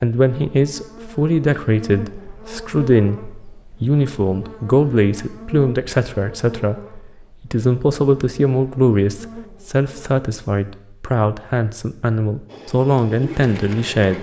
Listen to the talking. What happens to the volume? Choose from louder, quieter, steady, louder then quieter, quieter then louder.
steady.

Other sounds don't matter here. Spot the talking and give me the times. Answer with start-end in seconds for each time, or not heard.
0.0-3.2, 3.8-14.1.